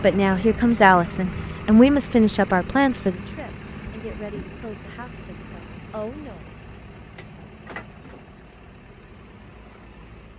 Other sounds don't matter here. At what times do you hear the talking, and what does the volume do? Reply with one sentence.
You can hear the talking from 0.0 to 6.5 s, getting quieter.